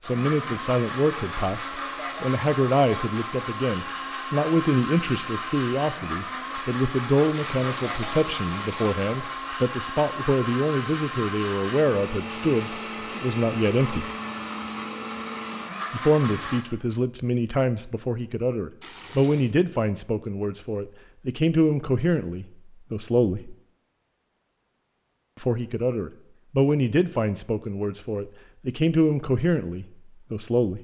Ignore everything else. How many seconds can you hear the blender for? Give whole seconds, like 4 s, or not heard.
17 s.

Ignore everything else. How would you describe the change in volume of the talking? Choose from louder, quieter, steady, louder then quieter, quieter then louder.
steady.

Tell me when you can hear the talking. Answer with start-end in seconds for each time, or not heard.
0.0-14.1, 15.9-23.6, 25.4-30.7.